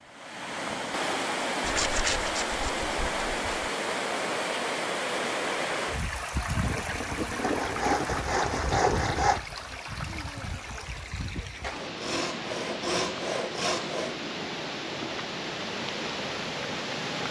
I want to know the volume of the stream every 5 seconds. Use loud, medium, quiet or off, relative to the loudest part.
loud, loud, medium, loud.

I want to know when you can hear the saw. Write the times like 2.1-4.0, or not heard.
1.6-3.7, 7.4-9.4, 11.6-14.2.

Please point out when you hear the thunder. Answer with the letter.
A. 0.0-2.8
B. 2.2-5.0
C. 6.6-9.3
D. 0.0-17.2
C.